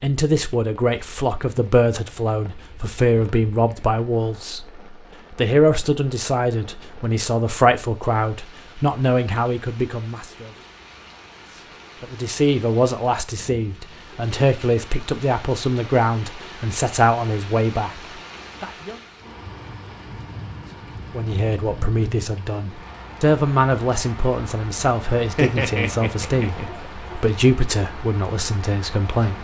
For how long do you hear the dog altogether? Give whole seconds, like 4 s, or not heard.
2 s.